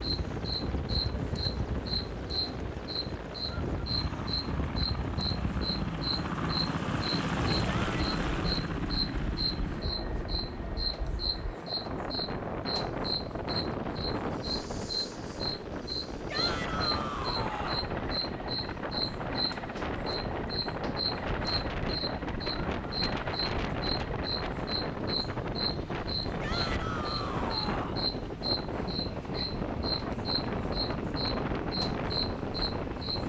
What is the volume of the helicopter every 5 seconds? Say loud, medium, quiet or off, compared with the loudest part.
medium, loud, medium, medium, medium, medium, medium.